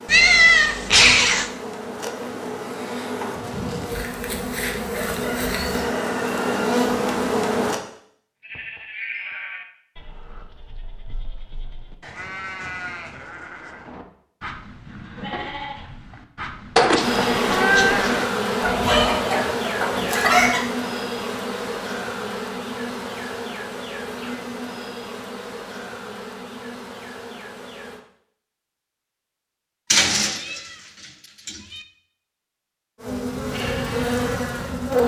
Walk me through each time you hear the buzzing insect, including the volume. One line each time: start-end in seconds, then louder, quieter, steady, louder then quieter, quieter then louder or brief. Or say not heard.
0.0-7.8 louder
16.9-28.0 quieter
33.0-35.0 brief.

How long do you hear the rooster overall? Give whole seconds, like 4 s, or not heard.
4 s.